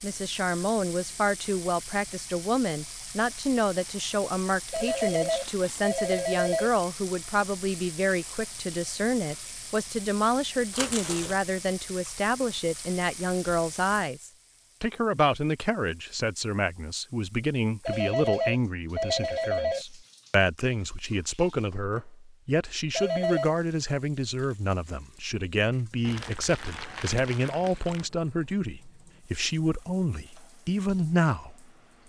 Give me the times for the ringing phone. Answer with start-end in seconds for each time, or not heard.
4.7-6.7, 17.9-19.9, 22.9-23.6.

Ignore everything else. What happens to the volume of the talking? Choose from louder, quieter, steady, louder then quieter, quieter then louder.
steady.